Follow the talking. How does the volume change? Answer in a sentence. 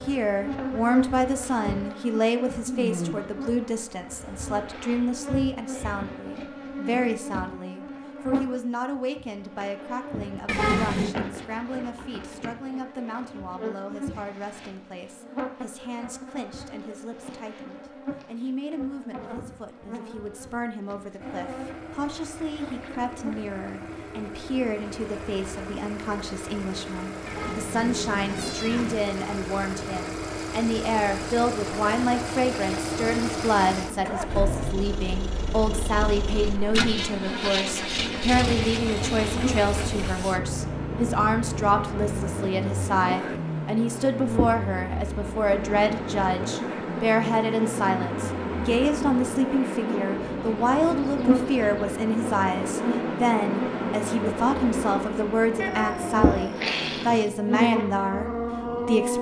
The volume of the talking goes down, then up.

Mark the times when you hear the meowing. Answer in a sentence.
The meowing can be heard from 10.4 to 11.2 s, from 27.2 to 29.1 s and from 55.6 to 57.2 s.